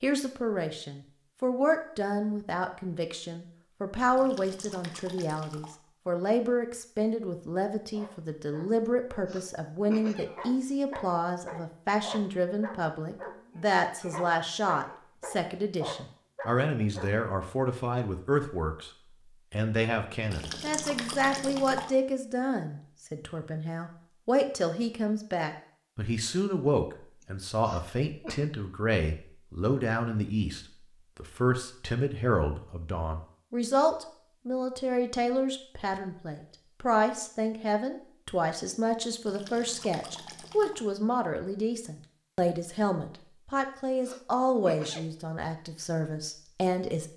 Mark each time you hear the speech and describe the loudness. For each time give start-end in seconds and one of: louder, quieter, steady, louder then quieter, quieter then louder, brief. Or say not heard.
0.0-18.9 steady
19.5-47.1 steady.